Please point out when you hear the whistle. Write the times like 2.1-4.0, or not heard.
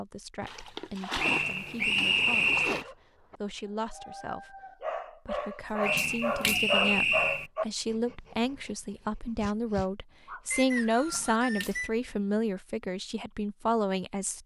1.1-2.9, 5.8-7.5, 10.5-11.9.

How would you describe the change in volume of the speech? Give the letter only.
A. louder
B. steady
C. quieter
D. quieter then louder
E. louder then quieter
A.